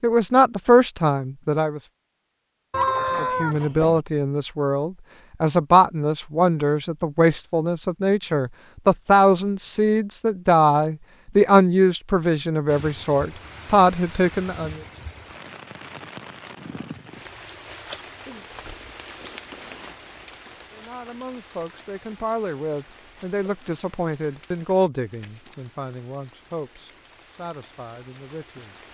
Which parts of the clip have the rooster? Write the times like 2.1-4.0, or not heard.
2.7-4.0.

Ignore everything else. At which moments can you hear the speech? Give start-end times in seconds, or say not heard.
0.0-1.8, 3.1-14.8, 20.7-28.8.